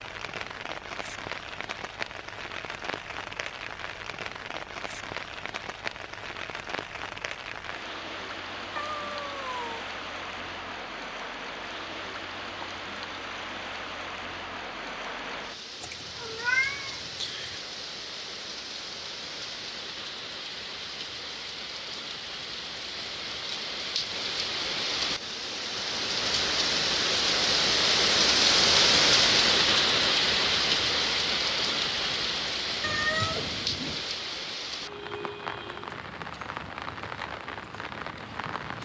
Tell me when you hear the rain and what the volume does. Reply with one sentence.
The rain can be heard from 0.0 to 38.8 s, getting louder then quieter.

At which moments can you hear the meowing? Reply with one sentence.
The meowing can be heard from 8.8 to 9.8 s, from 15.8 to 17.6 s and from 32.8 to 34.1 s.